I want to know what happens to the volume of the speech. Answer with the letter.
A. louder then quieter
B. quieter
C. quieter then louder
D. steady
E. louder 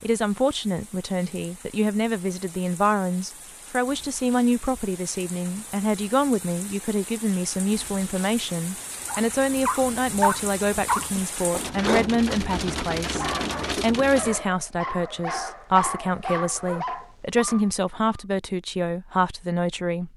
D.